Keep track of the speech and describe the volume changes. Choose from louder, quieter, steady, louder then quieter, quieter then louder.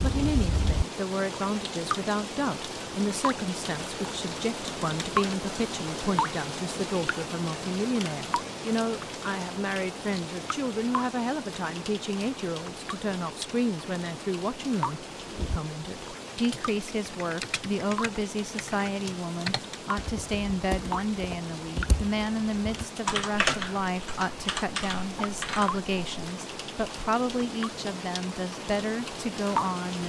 steady.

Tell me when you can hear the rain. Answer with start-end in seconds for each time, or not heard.
0.0-30.0.